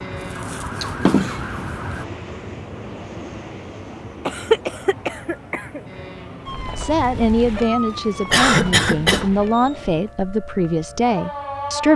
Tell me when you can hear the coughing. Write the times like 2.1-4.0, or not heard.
0.8-1.4, 4.2-5.8, 8.3-9.3.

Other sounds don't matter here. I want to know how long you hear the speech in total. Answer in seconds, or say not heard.
5 s.